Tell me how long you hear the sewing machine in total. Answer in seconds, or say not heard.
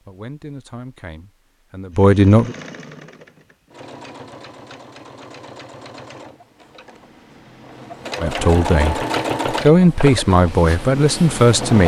10 s.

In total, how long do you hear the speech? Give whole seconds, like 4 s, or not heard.
6 s.